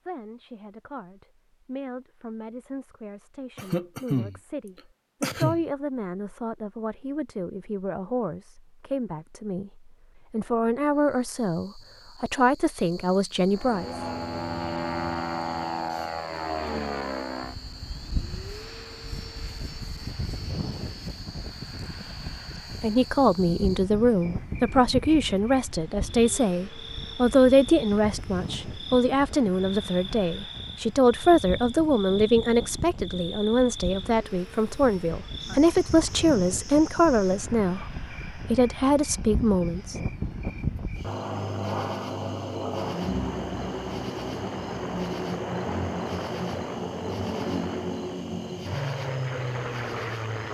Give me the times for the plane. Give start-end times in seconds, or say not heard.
13.5-50.4.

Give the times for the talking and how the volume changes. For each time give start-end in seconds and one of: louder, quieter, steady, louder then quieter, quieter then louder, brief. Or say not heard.
0.0-13.8 louder
22.8-40.0 steady.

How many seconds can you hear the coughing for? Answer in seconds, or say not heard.
2 s.